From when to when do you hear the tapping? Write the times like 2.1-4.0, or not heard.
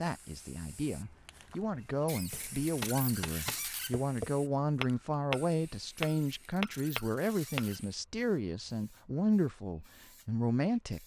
2.3-7.7.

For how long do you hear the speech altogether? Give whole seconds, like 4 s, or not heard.
11 s.